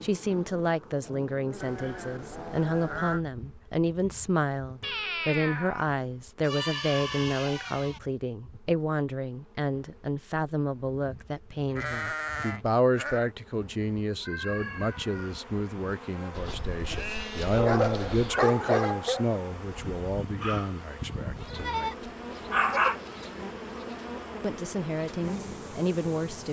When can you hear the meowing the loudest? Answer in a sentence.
The loudest moment of the meowing is at 5 seconds.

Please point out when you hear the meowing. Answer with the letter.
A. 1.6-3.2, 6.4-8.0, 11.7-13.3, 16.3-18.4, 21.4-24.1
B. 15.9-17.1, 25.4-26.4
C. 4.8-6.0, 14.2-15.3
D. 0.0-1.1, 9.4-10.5
C.